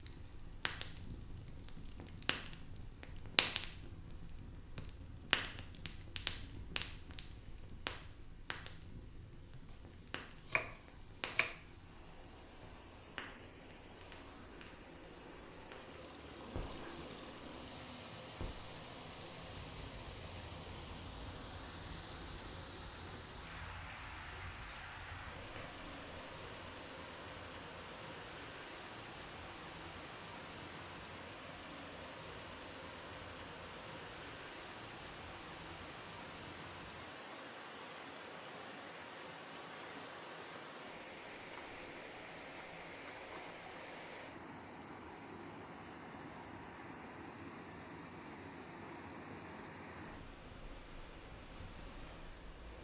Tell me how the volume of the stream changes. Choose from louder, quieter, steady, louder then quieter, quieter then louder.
louder.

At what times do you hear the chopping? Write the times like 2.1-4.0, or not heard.
9.5-11.6.